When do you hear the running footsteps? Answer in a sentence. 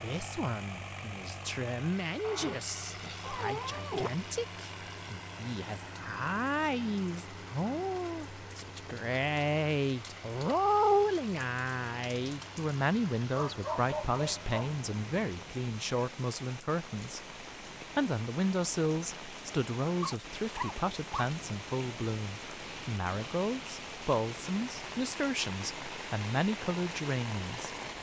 The running footsteps can't be heard in this clip.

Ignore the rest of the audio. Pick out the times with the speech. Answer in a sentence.
The speech can be heard from 0.0 to 17.2 s and from 17.9 to 27.7 s.